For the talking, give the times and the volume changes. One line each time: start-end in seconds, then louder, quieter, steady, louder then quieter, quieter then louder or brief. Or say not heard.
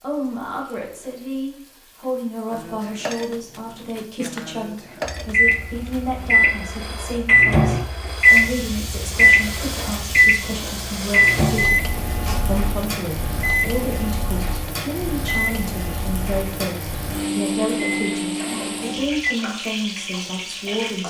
0.0-11.8 steady
12.4-21.0 steady.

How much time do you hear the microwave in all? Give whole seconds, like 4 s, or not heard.
14 s.